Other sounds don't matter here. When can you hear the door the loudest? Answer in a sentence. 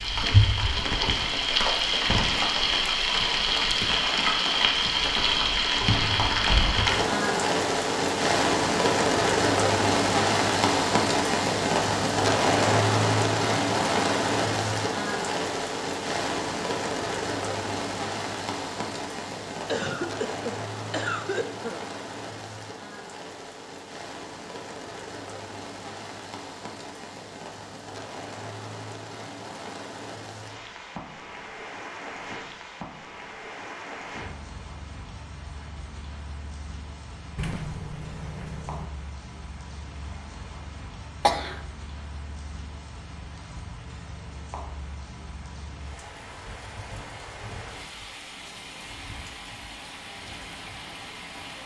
The volume of the door peaks at 38 seconds.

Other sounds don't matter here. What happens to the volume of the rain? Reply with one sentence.
The volume of the rain goes down.